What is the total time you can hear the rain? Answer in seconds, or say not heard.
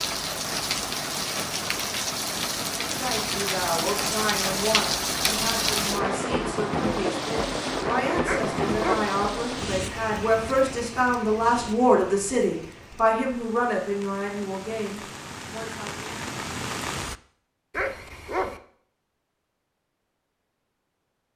17 s.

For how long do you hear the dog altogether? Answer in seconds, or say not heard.
2 s.